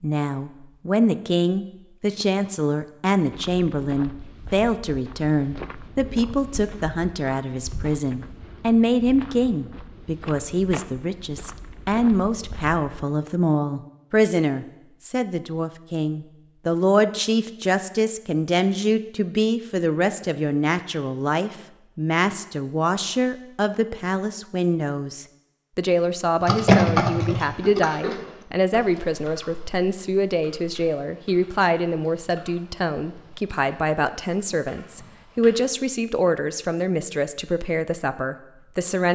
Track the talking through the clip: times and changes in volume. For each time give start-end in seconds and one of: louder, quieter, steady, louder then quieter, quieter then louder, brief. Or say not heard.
0.0-39.1 steady.